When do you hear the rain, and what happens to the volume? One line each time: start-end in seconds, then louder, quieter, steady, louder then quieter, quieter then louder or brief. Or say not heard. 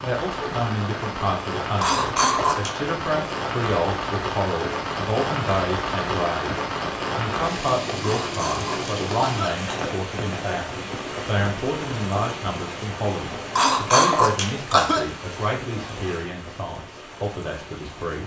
0.0-18.2 quieter.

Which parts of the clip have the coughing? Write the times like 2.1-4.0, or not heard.
1.8-2.8, 8.0-9.9, 13.6-15.1.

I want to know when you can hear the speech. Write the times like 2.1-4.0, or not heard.
0.0-18.2.